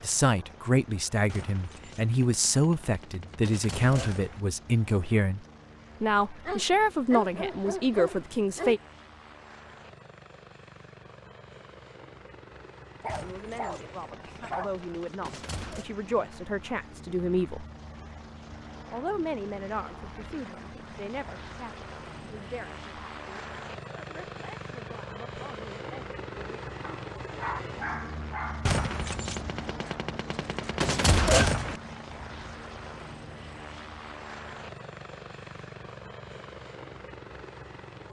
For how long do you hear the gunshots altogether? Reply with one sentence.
The gunshots can be heard for 9 seconds in total.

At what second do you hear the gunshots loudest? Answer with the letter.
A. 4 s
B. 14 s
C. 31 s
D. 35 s
C.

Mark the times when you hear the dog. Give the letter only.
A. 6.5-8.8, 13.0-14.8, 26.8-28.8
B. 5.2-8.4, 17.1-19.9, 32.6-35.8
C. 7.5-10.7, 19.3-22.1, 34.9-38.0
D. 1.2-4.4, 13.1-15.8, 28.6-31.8
A.